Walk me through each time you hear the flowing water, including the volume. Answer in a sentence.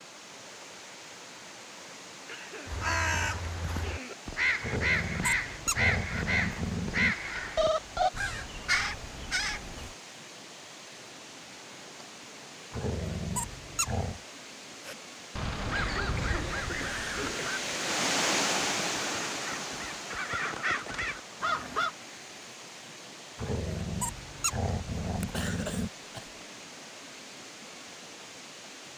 The flowing water can be heard from 0.0 to 28.9 s, getting louder then quieter.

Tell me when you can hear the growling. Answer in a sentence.
The growling can be heard from 4.6 to 7.2 s, from 12.7 to 14.2 s and from 23.4 to 25.9 s.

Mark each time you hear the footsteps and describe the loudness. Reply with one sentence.
You can't hear the footsteps here.